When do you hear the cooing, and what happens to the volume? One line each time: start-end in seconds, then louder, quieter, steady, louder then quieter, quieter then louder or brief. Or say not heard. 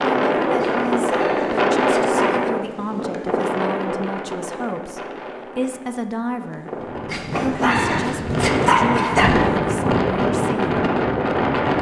not heard.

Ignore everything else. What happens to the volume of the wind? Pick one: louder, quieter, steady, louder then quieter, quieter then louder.
quieter then louder.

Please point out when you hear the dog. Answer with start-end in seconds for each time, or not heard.
0.6-2.5, 7.0-9.4.